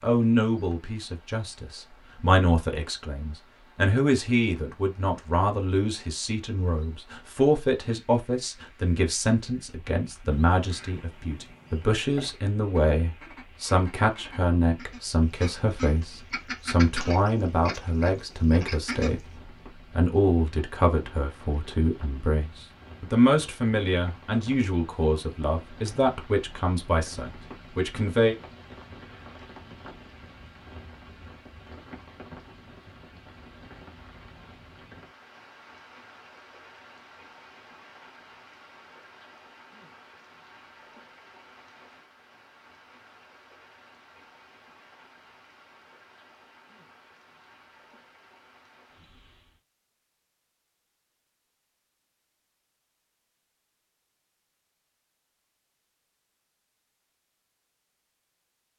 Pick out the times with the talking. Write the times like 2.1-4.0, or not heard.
0.0-28.4.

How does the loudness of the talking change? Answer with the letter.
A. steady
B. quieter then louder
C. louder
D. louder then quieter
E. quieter
A.